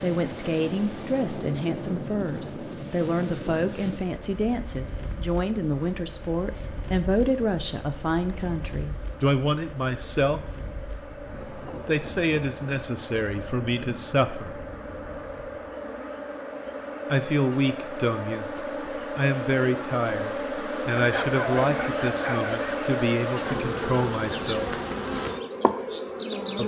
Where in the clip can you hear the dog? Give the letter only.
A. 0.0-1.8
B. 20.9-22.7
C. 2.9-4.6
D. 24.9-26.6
B.